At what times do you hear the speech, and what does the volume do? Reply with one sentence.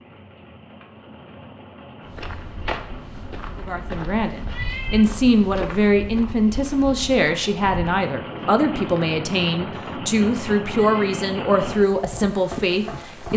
The speech can be heard from 3.5 to 13.3 s, at a steady volume.